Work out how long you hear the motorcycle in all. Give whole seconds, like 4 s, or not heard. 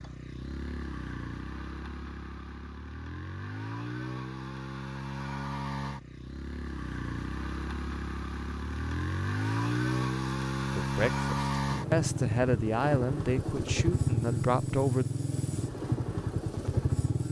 17 s.